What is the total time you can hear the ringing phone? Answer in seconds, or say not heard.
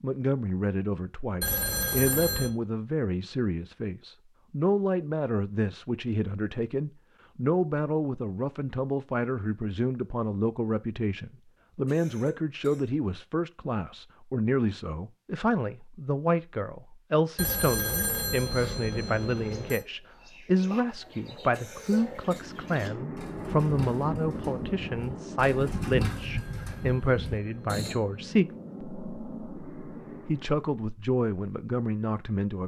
6 s.